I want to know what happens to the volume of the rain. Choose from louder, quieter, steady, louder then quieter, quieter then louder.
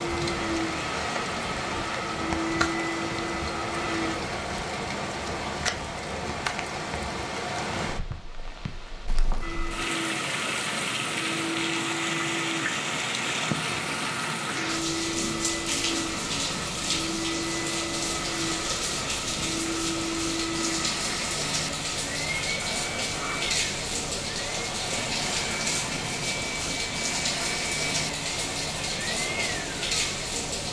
steady.